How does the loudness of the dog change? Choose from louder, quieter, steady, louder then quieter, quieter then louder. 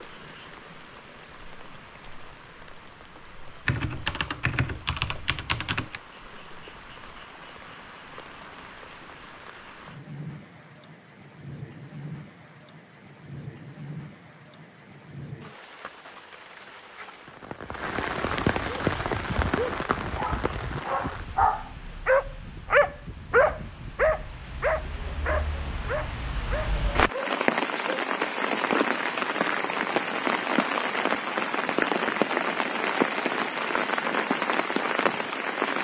louder then quieter.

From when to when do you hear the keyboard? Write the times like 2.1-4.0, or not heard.
3.6-6.0.